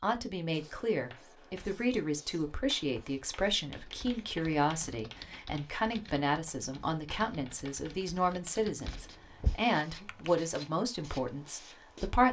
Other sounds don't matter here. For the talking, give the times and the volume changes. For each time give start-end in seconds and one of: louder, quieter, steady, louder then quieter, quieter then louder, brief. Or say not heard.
0.0-12.2 steady.